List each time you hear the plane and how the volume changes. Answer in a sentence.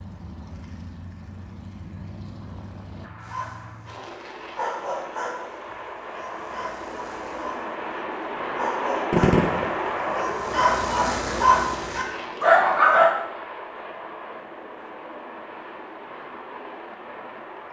You can hear the plane from 0.0 to 17.6 s, getting louder then quieter.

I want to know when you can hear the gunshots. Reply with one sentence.
The gunshots can be heard from 9.1 to 9.7 s.